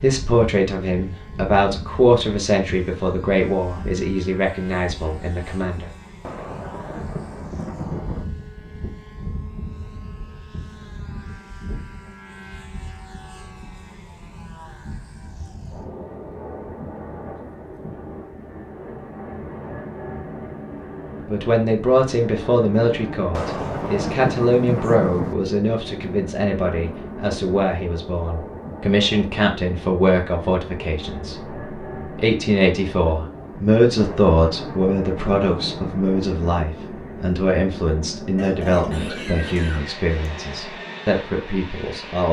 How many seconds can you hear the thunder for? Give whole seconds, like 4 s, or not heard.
6 s.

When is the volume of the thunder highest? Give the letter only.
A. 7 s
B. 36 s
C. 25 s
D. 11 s
C.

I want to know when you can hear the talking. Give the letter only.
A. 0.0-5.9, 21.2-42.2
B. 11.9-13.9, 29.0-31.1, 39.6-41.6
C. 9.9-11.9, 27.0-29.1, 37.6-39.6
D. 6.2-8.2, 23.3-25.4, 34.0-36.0
A.